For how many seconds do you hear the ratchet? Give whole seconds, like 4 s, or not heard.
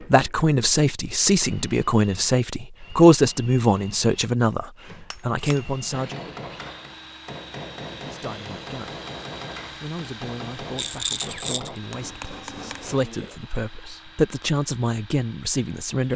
not heard.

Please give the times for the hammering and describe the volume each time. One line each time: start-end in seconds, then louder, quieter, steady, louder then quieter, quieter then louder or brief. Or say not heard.
5.1-13.4 steady.